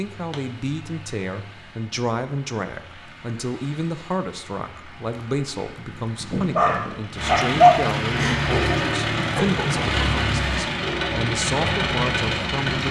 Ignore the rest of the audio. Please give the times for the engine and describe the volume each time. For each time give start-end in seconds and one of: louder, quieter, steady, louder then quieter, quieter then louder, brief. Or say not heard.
0.0-12.8 louder.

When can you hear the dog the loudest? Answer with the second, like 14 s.
8 s.